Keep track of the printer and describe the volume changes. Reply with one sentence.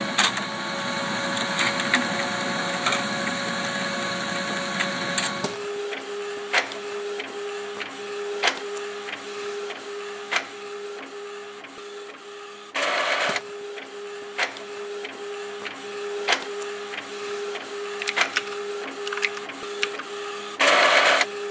The loudness of the printer goes down, then up.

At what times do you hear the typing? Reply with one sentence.
You can hear the typing from 17.9 to 20.1 s.